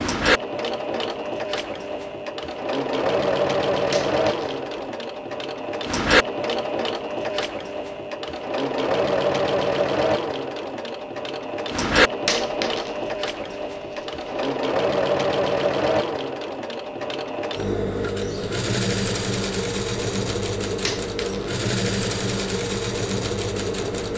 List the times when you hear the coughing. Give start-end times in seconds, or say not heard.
not heard.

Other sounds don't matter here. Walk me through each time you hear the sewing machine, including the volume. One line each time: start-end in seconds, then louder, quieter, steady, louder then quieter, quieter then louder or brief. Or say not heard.
0.0-24.1 steady.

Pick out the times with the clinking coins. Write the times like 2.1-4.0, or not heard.
3.9-4.6, 12.2-12.9, 20.9-21.5.